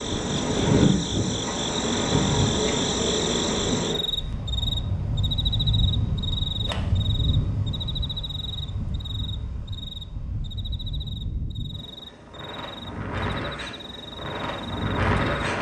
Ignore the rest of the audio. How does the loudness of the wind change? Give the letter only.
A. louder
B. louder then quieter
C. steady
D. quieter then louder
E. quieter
D.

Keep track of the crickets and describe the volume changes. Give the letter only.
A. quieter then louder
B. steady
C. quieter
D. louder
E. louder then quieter
C.